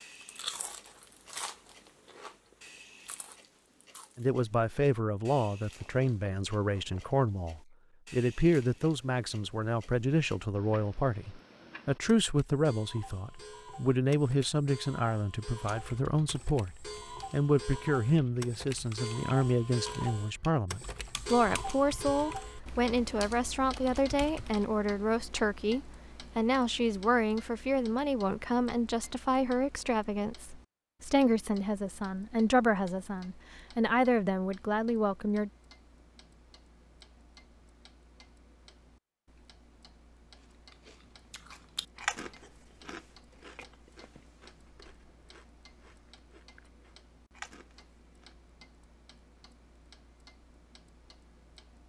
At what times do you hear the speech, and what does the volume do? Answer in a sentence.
You can hear the speech from 4.2 to 35.5 s, at a steady volume.